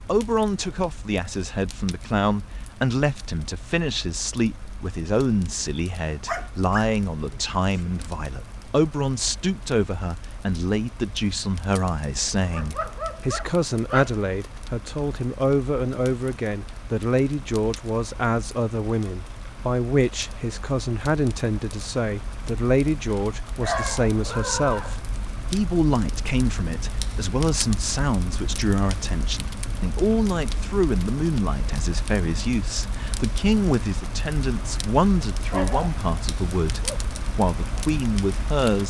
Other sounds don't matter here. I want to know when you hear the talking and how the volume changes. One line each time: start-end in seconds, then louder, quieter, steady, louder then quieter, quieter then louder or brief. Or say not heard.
0.1-38.8 steady.